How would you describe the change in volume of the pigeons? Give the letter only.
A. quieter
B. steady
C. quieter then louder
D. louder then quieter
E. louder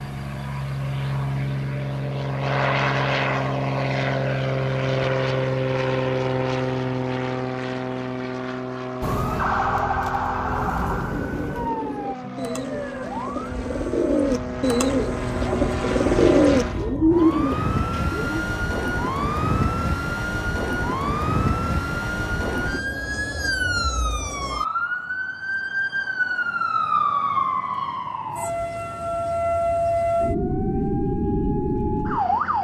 E.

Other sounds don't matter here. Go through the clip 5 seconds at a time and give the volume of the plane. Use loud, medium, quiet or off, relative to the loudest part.
loud, loud, medium, loud, off, off, off.